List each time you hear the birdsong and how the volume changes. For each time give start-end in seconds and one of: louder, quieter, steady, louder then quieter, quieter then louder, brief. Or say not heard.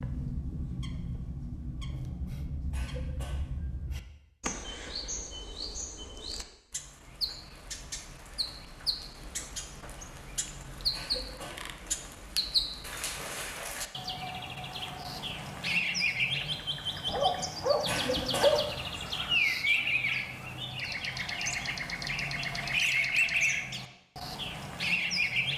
0.0-25.5 louder.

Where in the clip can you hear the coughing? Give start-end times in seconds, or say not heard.
2.7-3.5, 10.9-11.7, 17.9-18.6.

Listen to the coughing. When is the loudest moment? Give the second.
18 s.